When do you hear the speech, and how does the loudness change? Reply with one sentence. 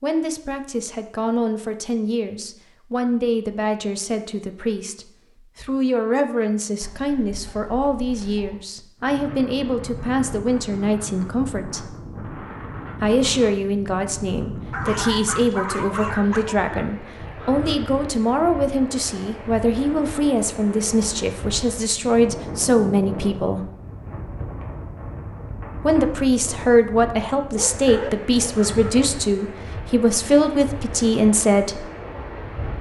The speech can be heard from 0.0 to 11.9 s, at a steady volume; from 13.0 to 23.6 s, at a steady volume; and from 25.8 to 31.9 s, at a steady volume.